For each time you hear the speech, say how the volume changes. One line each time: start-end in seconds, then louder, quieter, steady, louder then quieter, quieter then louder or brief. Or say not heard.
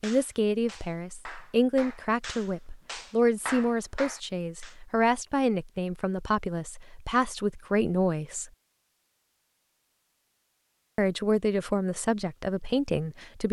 0.0-8.5 steady
10.9-13.4 brief.